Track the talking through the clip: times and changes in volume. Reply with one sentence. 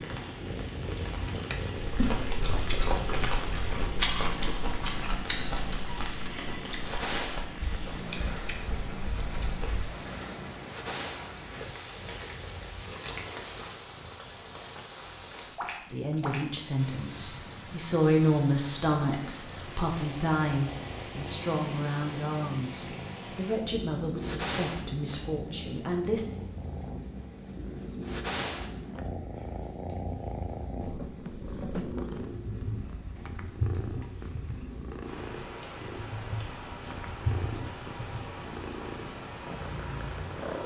The talking can be heard from 15.9 to 26.2 s, getting quieter.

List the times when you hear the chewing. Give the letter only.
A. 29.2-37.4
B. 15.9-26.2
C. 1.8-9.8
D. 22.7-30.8
C.